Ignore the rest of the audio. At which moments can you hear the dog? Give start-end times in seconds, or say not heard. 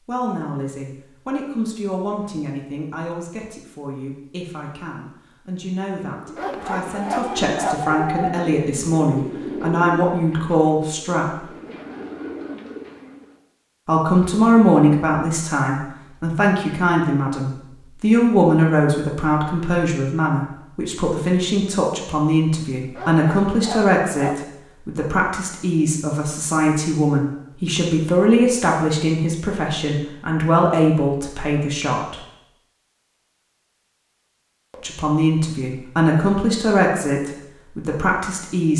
6.3-7.8, 22.9-24.4.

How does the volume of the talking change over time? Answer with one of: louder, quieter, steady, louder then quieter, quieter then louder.
louder.